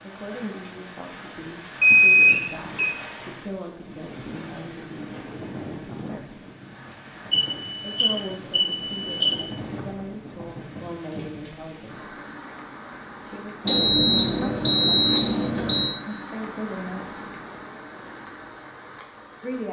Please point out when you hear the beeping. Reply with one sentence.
The beeping can be heard from 1.8 to 3.0 s, from 7.3 to 9.3 s and from 13.7 to 15.9 s.